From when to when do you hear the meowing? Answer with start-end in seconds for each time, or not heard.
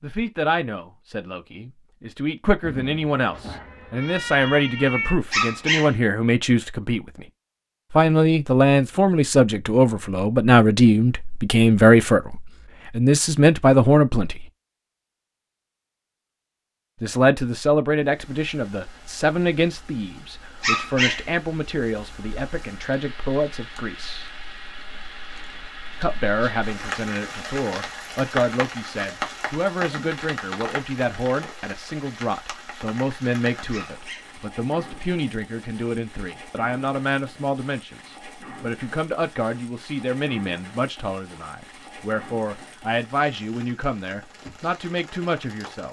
2.6-5.2.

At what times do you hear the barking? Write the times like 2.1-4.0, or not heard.
5.3-6.0, 20.6-21.2, 33.7-34.4.